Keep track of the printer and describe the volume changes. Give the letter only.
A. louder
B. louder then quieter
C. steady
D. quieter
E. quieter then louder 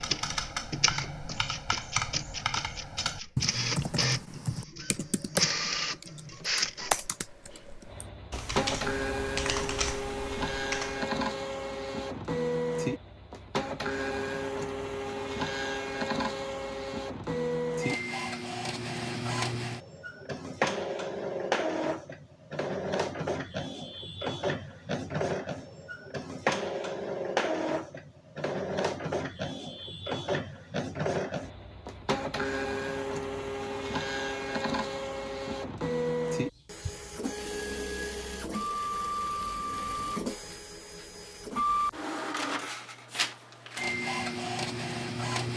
C.